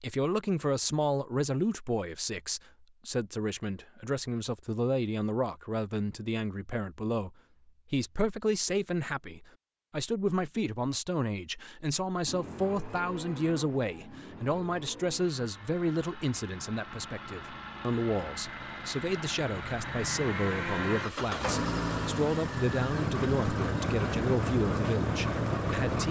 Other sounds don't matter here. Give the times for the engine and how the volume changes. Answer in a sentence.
The engine can be heard from 12.2 to 26.0 s, getting louder.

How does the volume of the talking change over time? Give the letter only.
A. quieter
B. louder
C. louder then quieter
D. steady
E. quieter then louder
D.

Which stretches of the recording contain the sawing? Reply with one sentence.
You can hear the sawing from 22.9 to 26.0 s.